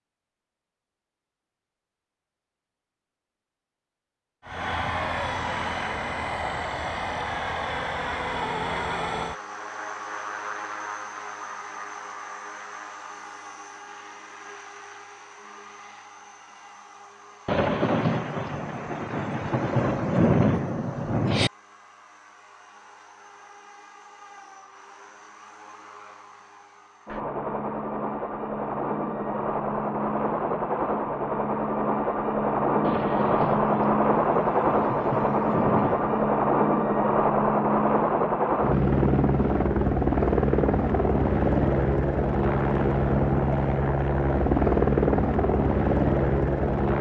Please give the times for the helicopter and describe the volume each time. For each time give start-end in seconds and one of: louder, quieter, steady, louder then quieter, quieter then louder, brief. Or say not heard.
4.5-46.9 quieter then louder.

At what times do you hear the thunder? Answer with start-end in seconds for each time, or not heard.
17.4-21.5, 32.8-36.2.